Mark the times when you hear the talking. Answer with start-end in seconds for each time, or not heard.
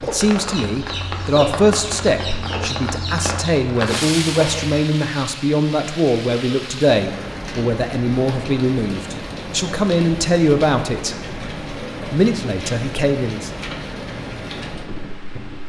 0.0-11.3, 12.1-13.6.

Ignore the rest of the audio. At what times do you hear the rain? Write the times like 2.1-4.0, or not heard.
0.0-15.6.